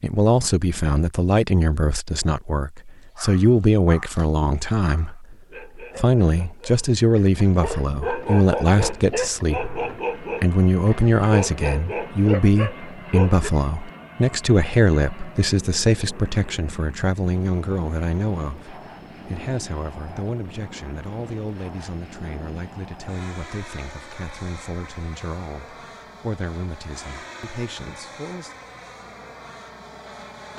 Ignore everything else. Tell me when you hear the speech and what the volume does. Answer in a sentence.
You can hear the speech from 0.0 to 28.5 s, getting quieter.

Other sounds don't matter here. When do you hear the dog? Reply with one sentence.
You can hear the dog from 3.0 to 13.5 s.